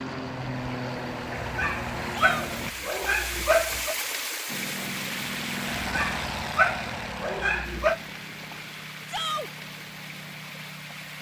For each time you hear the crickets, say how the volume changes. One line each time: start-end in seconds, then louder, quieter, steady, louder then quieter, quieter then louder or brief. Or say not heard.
not heard.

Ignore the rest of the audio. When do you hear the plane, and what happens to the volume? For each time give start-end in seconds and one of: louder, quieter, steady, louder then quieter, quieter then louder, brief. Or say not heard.
0.0-2.8 brief
4.5-11.1 quieter.